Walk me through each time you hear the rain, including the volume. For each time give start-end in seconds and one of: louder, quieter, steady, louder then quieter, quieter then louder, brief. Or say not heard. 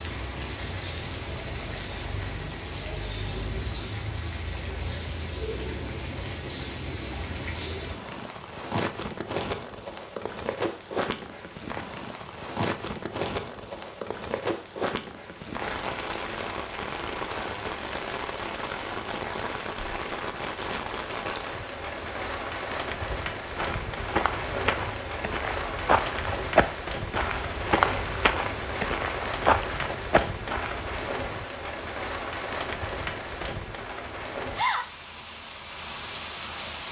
0.0-36.8 steady.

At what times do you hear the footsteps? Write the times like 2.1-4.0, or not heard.
23.1-31.1.